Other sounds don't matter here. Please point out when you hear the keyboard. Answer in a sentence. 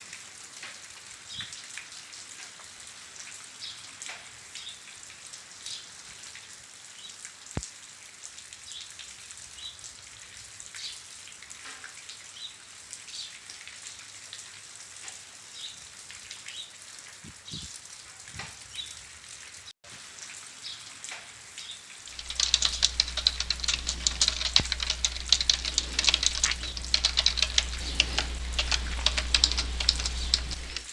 The keyboard can be heard from 22.1 to 30.8 s.